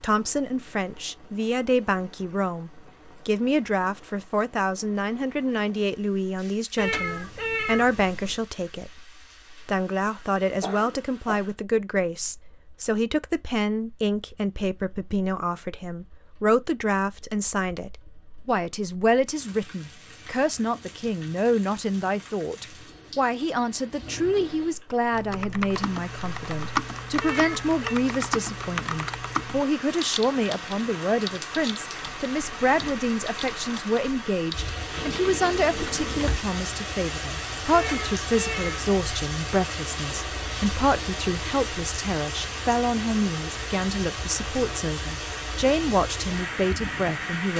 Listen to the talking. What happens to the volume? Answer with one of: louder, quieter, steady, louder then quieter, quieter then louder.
steady.